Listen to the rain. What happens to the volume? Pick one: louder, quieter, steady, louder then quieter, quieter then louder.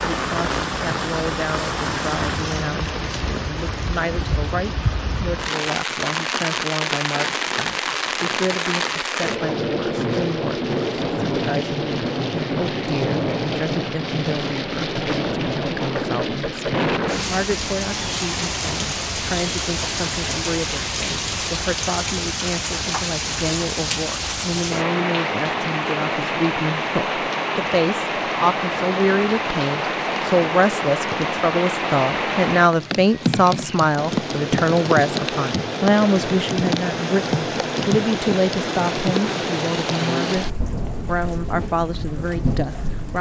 steady.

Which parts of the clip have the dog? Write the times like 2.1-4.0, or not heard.
not heard.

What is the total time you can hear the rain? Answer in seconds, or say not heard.
43 s.